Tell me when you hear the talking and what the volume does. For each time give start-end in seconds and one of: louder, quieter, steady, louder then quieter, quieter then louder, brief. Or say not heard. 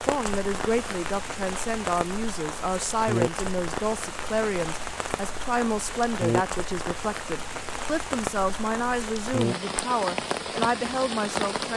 0.0-11.7 steady.